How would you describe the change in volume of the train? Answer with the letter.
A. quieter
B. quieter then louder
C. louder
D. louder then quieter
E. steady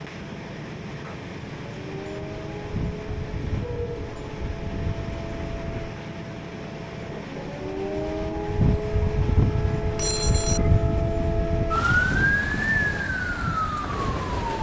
E.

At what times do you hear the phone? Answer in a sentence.
You can hear the phone from 9.9 to 10.7 s.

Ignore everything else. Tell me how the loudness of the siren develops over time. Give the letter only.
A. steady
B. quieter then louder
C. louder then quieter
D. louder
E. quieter
D.